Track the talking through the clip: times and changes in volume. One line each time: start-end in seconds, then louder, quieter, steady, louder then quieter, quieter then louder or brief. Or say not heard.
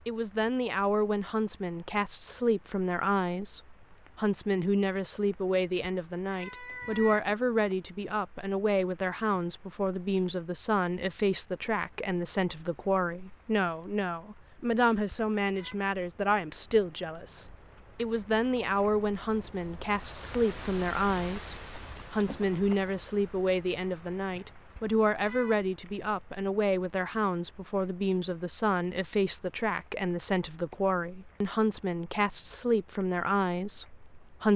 0.1-34.5 steady.